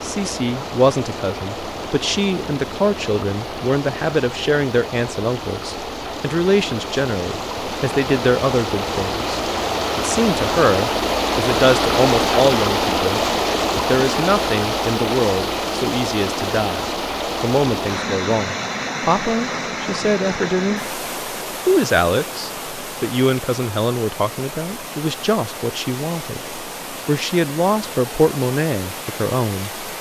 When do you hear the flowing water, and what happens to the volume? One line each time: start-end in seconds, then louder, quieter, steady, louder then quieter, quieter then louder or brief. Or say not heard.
0.0-29.9 louder then quieter.